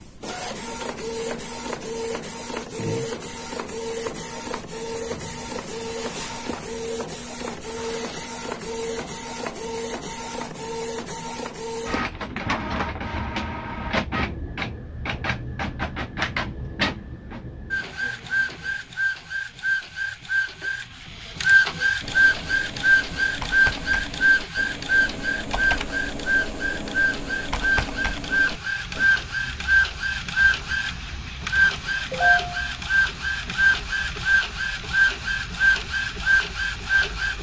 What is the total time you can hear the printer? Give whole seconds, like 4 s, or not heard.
37 s.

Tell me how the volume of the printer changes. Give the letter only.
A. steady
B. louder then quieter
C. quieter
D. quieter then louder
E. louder
E.